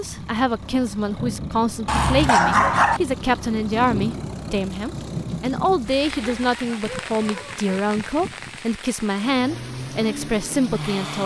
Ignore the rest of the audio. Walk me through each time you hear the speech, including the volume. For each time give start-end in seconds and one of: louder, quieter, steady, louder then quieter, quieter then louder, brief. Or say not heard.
0.0-11.2 steady.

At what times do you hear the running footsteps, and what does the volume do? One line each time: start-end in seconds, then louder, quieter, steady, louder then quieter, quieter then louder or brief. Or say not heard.
not heard.